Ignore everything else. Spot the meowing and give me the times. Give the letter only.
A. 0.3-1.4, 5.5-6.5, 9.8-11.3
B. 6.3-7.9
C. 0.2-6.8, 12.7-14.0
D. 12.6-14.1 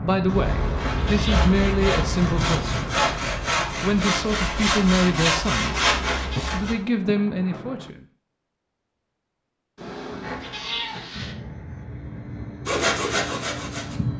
A.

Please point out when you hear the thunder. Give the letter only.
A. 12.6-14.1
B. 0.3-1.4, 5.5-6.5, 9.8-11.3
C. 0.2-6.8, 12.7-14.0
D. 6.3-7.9
D.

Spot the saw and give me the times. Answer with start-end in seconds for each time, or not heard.
0.2-6.8, 12.7-14.0.